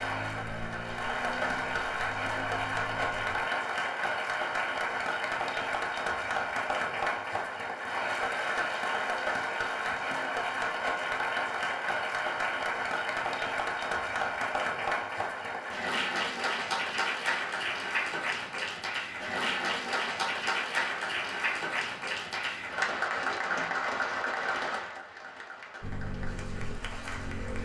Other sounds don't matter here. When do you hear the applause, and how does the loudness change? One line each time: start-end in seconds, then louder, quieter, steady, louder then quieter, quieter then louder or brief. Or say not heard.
0.0-27.6 steady.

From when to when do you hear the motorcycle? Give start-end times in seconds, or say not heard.
0.0-3.5, 25.8-27.6.